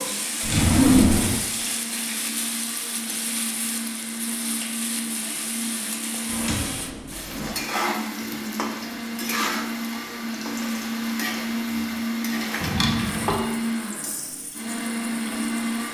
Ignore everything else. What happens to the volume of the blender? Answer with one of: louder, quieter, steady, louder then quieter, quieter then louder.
louder.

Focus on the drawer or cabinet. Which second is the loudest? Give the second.
1 s.